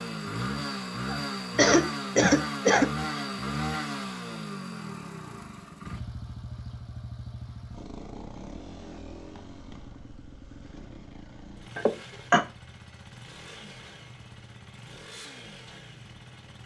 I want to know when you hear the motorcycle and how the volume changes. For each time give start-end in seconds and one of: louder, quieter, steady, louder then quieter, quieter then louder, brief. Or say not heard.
0.0-16.6 quieter.